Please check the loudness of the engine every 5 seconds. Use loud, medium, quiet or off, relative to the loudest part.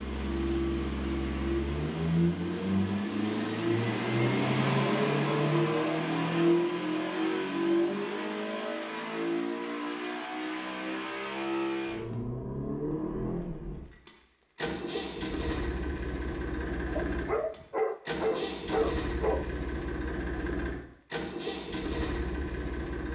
loud, loud, medium, medium, medium.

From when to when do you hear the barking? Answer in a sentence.
You can hear the barking from 16.9 to 19.4 s.